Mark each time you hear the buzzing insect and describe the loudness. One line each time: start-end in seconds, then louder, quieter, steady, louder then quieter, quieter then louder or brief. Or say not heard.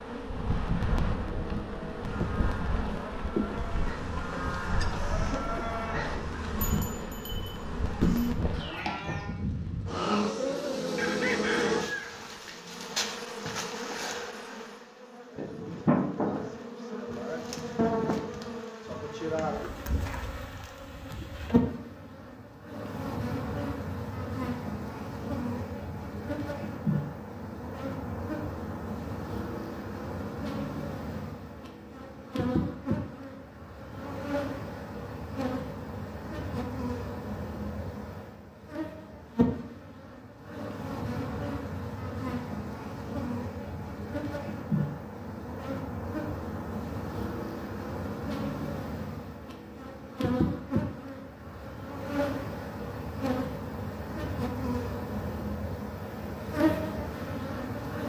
0.0-58.0 steady.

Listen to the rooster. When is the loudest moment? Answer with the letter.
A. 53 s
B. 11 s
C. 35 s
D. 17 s
B.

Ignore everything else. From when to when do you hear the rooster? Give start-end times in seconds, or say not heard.
10.9-12.6.